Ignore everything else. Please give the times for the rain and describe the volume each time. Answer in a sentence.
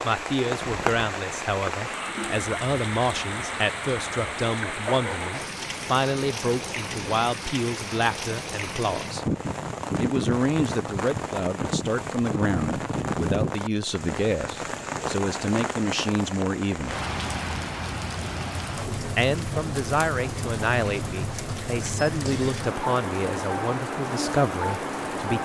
The rain can be heard from 0.0 to 25.4 s, at a steady volume.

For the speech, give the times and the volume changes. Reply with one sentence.
You can hear the speech from 0.0 to 9.2 s, at a steady volume; from 10.0 to 16.9 s, at a steady volume; and from 19.1 to 25.4 s, at a steady volume.